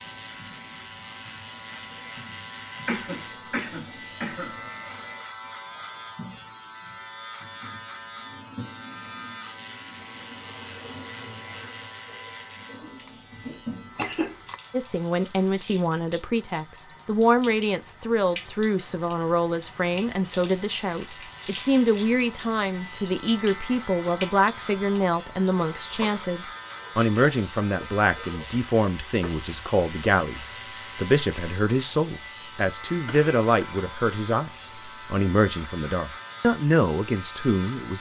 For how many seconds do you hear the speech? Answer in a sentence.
The speech can be heard for 23 seconds in total.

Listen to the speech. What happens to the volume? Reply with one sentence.
The loudness of the speech stays about the same.